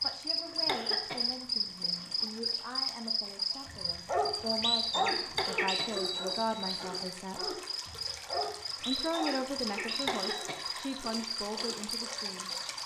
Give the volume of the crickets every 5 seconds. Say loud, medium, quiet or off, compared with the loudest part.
loud, medium, medium.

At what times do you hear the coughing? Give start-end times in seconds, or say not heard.
0.5-2.2, 5.2-7.0, 9.8-10.7.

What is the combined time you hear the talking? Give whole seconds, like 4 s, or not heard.
11 s.